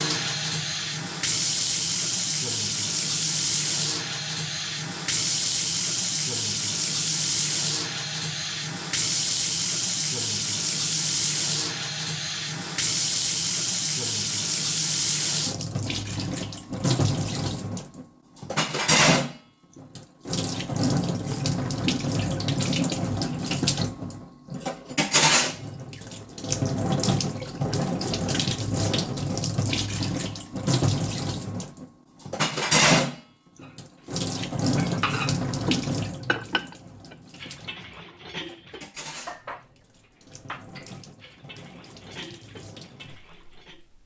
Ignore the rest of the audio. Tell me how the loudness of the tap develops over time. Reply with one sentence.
The loudness of the tap goes down.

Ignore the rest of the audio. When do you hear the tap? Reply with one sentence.
The tap can be heard from 0.0 to 44.0 s.